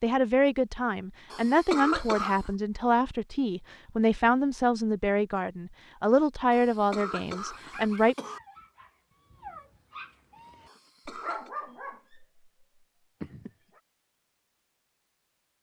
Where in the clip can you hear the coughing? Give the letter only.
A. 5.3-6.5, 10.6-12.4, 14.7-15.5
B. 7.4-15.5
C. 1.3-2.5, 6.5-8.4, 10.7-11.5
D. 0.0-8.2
C.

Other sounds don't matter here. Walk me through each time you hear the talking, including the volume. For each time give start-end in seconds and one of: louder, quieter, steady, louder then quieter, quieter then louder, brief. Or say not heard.
0.0-8.2 steady.